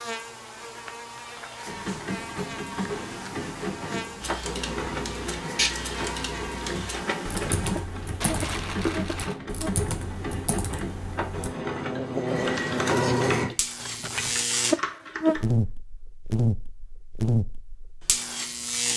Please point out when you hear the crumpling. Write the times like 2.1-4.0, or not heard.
0.7-1.6, 8.2-9.4, 13.8-14.4.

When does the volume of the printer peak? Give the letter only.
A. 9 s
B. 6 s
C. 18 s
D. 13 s
D.